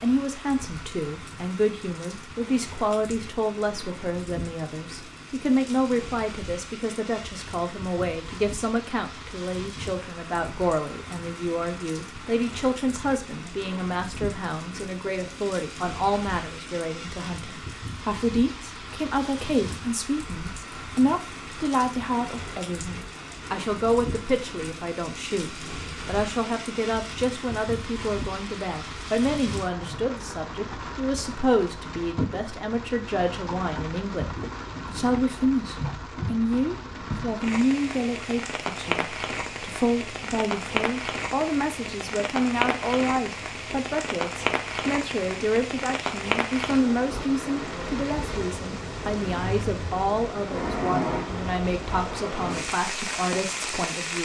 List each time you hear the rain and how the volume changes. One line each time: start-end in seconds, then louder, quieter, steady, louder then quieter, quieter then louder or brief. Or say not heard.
0.0-54.2 louder.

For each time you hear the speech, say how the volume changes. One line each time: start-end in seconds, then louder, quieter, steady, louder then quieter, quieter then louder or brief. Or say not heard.
0.0-54.2 steady.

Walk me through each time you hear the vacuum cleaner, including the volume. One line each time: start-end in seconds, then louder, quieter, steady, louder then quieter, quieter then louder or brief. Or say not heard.
not heard.